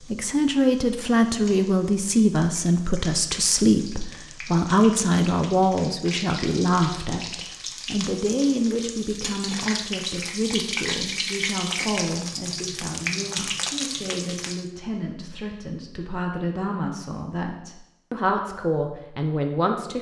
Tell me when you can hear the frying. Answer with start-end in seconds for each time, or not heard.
0.0-14.7.